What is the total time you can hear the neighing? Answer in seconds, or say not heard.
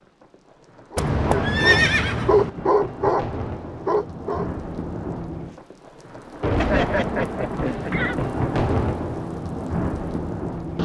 3 s.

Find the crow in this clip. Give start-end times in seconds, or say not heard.
not heard.